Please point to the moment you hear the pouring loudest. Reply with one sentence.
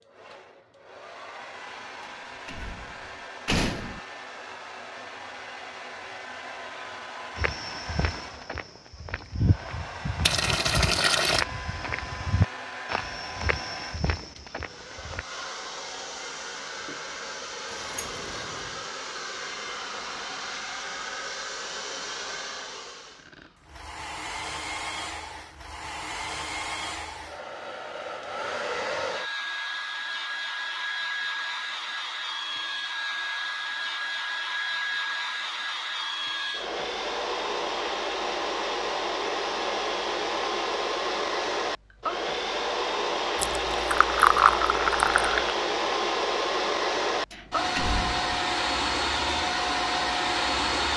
The volume of the pouring peaks at 44 seconds.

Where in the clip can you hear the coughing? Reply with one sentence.
You can't hear the coughing here.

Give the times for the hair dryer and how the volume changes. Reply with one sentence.
You can hear the hair dryer from 0.0 to 50.9 s, getting louder.